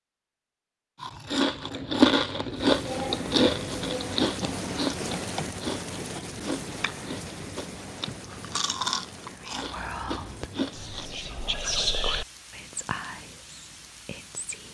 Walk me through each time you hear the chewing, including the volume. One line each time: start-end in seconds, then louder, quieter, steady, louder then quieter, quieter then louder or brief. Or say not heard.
1.0-11.2 quieter.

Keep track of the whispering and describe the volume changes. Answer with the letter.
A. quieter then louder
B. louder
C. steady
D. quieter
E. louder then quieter
E.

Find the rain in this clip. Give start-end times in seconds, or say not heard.
2.5-14.6.